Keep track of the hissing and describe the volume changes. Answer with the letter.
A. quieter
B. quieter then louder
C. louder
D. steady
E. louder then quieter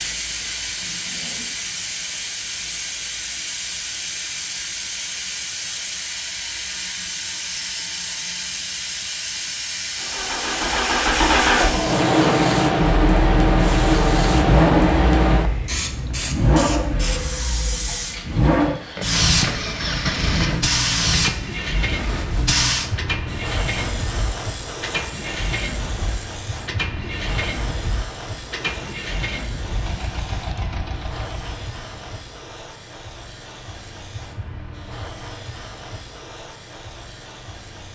E.